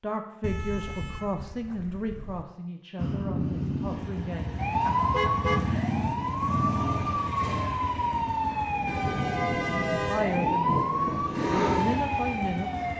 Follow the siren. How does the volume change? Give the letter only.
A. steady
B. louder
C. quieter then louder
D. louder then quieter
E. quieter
A.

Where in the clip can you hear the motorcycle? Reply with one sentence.
The motorcycle can be heard from 3.0 to 12.9 s.